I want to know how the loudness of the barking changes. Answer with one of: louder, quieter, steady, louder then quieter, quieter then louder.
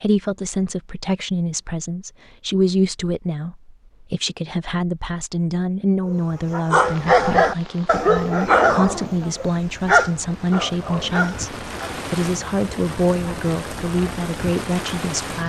quieter.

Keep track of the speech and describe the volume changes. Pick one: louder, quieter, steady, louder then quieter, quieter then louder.
steady.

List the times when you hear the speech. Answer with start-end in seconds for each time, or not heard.
0.0-15.4.